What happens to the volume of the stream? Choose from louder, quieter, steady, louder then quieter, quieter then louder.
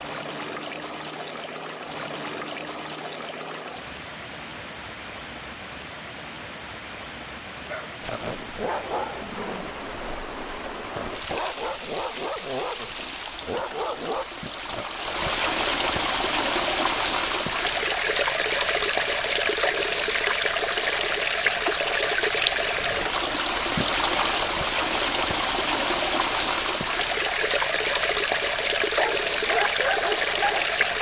louder.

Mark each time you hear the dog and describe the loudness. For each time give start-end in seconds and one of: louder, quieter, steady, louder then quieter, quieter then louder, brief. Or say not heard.
7.7-14.9 quieter then louder
29.0-30.8 brief.